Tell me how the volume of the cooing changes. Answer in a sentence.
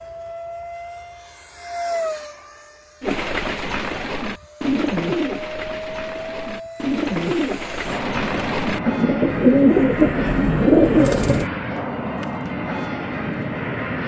The loudness of the cooing goes up.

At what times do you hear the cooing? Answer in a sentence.
You can hear the cooing from 3.0 to 11.5 s.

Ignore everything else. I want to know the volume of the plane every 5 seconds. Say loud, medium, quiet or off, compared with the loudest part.
medium, loud, loud.